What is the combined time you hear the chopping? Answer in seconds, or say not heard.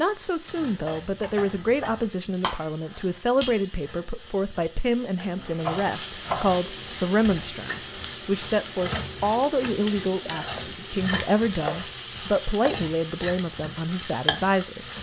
4 s.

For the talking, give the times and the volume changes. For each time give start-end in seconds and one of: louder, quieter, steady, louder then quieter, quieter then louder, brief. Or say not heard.
0.0-14.9 steady.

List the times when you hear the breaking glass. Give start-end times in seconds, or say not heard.
2.4-3.9.